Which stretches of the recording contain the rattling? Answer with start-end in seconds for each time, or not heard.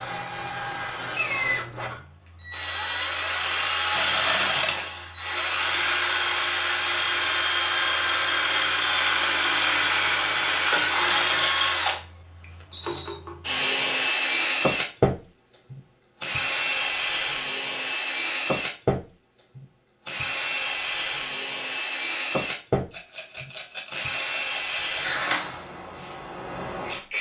3.9-4.8, 12.7-13.2, 22.9-25.0.